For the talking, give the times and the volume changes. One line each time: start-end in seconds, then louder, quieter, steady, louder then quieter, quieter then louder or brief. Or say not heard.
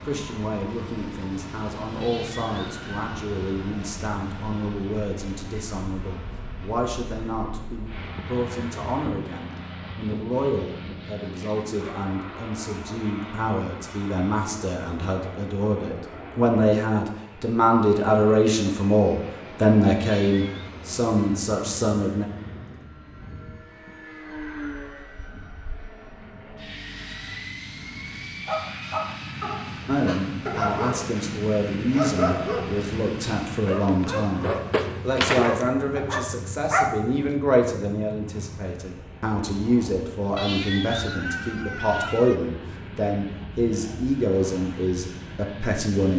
0.1-22.2 louder
29.9-46.1 steady.